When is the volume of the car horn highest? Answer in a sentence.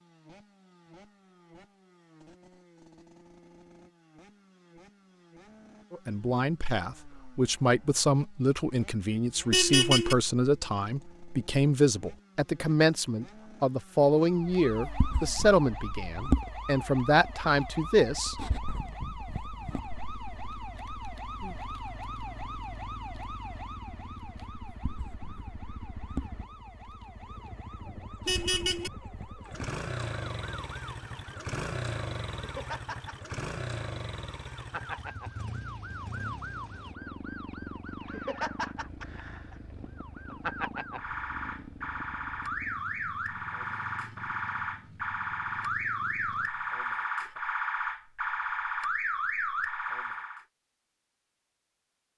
The volume of the car horn peaks at 10 seconds.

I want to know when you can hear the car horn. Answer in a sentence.
The car horn can be heard from 9.5 to 10.2 s and from 28.2 to 28.9 s.